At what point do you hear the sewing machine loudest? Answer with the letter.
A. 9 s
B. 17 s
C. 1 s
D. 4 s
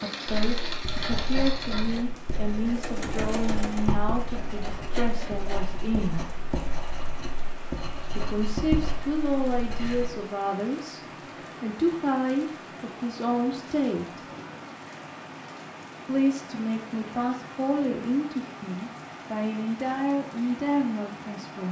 C.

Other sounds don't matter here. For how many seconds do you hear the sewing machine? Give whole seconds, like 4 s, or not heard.
6 s.